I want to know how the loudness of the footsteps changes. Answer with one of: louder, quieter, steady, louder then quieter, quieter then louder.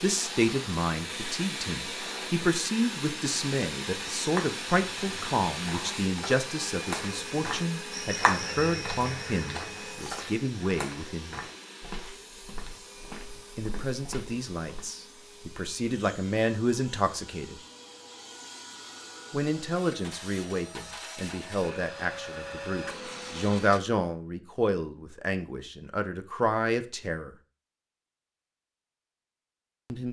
louder then quieter.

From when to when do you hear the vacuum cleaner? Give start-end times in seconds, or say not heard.
0.0-23.8.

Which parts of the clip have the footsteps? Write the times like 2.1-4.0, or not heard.
4.2-14.8.